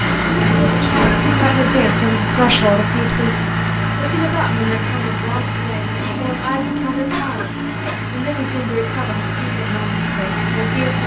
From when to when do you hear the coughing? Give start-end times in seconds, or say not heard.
0.9-1.6, 7.1-7.9.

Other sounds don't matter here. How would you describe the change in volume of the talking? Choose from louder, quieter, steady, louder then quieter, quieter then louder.
quieter.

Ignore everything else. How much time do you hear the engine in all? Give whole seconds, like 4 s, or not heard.
11 s.